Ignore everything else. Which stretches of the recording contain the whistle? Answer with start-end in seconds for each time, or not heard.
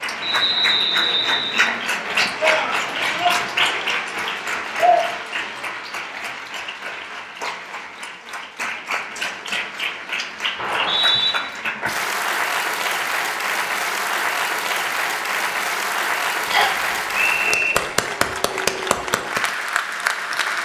0.2-1.7, 10.6-11.3, 16.5-17.8.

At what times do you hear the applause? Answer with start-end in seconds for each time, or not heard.
0.0-20.6.